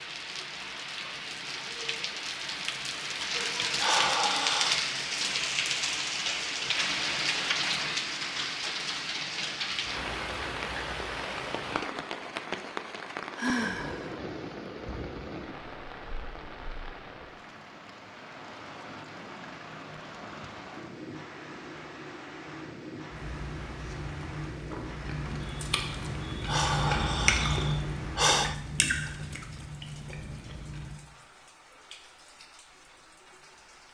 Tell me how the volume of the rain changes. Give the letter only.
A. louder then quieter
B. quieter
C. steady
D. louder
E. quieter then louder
B.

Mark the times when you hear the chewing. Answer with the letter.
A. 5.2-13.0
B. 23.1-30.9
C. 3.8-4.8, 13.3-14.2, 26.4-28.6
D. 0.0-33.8
B.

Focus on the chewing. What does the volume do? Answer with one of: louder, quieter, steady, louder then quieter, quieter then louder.
louder then quieter.